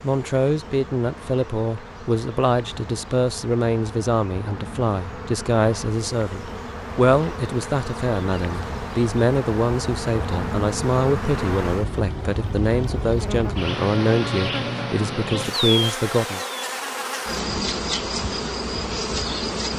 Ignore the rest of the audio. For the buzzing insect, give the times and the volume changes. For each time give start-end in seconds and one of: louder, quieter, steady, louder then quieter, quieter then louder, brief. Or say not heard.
0.0-19.7 louder.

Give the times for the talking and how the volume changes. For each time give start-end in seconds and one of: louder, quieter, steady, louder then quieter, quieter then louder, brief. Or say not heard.
0.0-16.4 steady.